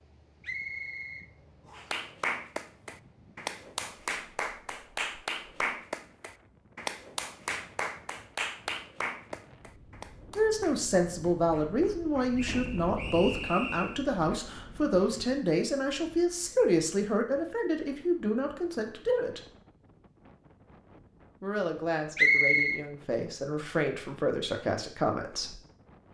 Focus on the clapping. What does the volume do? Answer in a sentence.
The volume of the clapping goes down.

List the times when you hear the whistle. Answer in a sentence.
You can hear the whistle from 0.4 to 2.0 s, from 12.3 to 14.0 s and from 22.1 to 22.8 s.